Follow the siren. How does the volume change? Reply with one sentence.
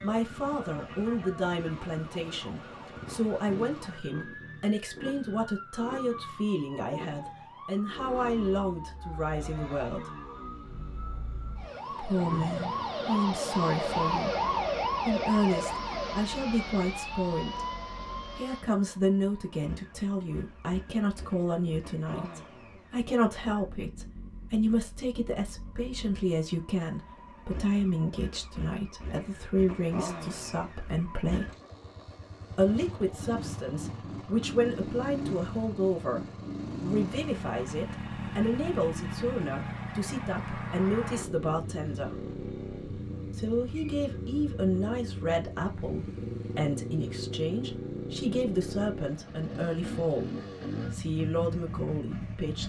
The volume of the siren goes up.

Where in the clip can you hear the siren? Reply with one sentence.
The siren can be heard from 0.0 to 18.6 s.